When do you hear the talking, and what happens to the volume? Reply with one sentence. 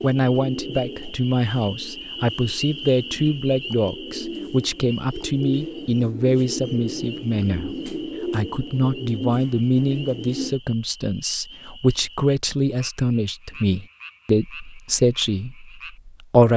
You can hear the talking from 0.0 to 16.5 s, at a steady volume.